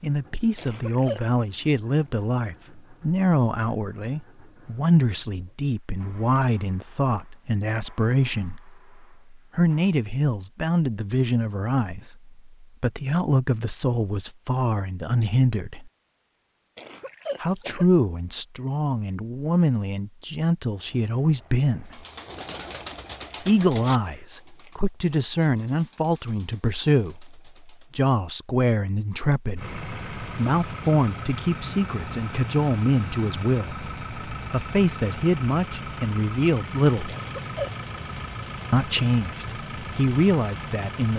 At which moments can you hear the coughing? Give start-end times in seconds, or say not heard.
0.6-1.2, 16.8-17.9, 37.0-37.8.